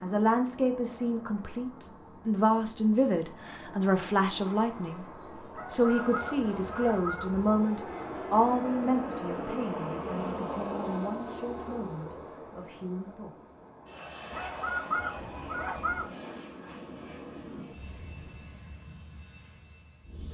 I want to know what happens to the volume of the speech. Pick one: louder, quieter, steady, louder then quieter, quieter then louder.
quieter.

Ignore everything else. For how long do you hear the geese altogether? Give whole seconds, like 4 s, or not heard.
4 s.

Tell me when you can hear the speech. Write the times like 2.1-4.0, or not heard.
0.0-5.0, 5.7-13.3.